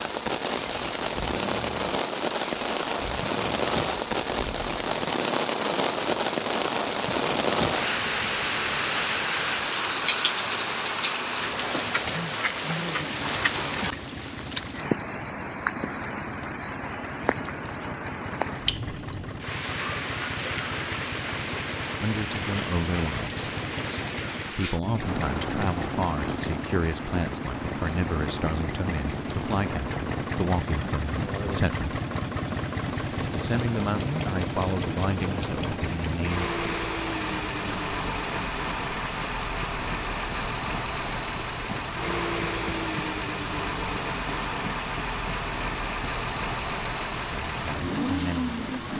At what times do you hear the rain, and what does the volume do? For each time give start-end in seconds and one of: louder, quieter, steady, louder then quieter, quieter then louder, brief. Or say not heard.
0.0-48.9 quieter.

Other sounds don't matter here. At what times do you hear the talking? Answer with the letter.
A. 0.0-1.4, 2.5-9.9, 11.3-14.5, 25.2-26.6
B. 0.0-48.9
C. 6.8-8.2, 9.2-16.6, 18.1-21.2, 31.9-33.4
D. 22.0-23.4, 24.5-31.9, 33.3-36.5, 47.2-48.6
D.